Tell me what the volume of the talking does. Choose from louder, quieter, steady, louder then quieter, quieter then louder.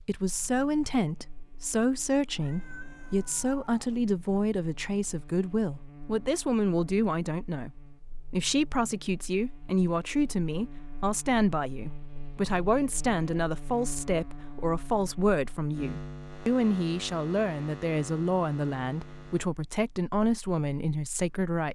steady.